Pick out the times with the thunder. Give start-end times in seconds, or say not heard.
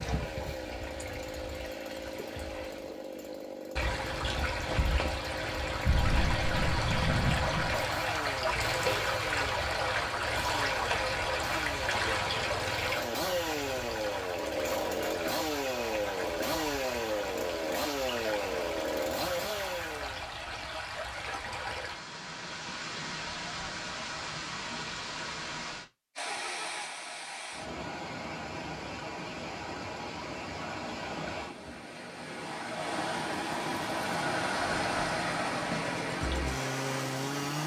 5.8-7.8.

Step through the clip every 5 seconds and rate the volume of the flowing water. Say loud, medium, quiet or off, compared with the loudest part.
medium, loud, loud, medium, medium, medium, loud, loud.